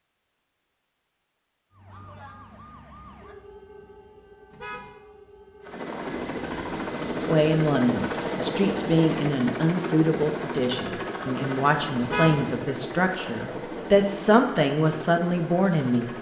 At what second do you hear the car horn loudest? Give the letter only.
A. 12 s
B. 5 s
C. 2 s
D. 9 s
A.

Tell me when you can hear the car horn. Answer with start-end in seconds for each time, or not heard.
4.5-4.9, 12.0-12.4.